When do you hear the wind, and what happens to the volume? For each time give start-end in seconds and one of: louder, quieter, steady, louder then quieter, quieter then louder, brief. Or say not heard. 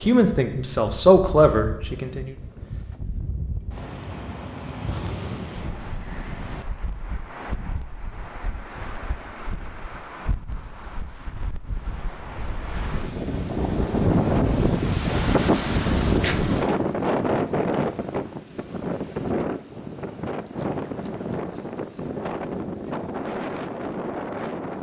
0.0-24.7 louder then quieter.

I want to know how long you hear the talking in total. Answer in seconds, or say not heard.
2 s.